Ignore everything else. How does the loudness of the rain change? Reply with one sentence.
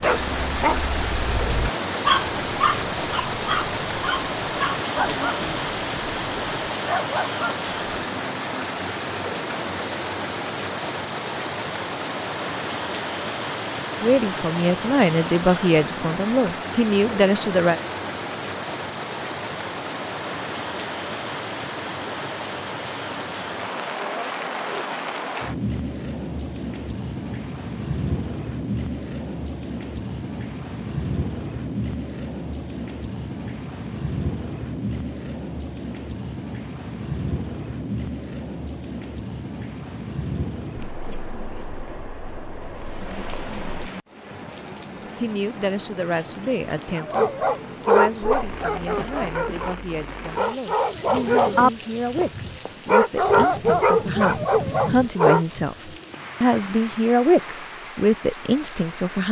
The volume of the rain goes down.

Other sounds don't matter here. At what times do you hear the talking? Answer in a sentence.
You can hear the talking from 14.0 to 17.8 s and from 45.2 to 59.2 s.